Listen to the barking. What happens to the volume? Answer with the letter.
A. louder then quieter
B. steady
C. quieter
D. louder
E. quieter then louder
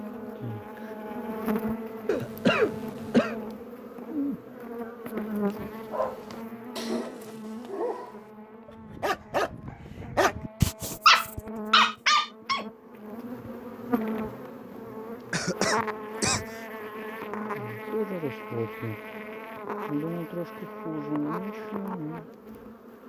D.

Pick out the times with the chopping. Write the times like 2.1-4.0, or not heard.
not heard.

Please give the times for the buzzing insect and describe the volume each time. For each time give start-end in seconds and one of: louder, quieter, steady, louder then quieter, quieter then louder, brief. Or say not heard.
0.0-23.0 quieter then louder.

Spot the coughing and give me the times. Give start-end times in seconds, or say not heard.
2.0-3.4, 15.3-16.4.